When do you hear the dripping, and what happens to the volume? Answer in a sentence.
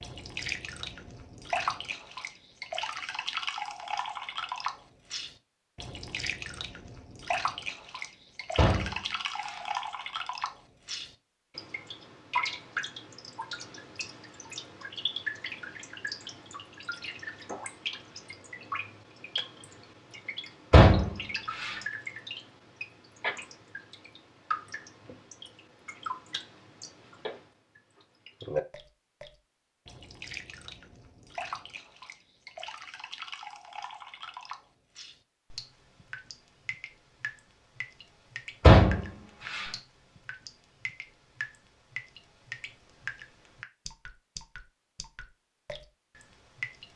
The dripping can be heard from 0.0 to 46.9 s, getting quieter.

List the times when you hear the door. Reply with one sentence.
You can hear the door from 8.6 to 9.6 s, from 20.7 to 21.8 s and from 38.6 to 39.7 s.